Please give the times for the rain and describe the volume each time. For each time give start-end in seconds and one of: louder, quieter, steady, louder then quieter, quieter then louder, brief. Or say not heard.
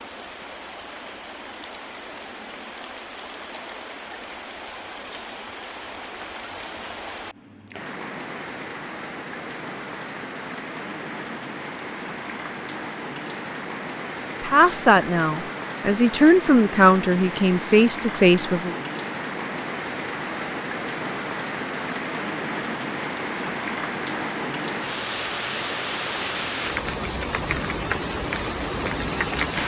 0.0-29.6 louder.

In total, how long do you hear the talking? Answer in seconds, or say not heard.
4 s.